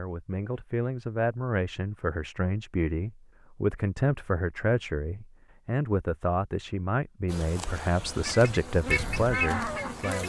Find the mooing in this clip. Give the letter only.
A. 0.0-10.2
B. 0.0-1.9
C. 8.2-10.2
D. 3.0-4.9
C.